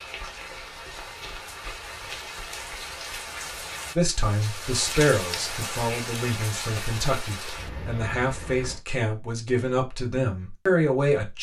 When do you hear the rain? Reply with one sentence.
You can hear the rain from 0.0 to 8.8 s.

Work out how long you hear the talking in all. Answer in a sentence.
You can hear the talking for 7 seconds altogether.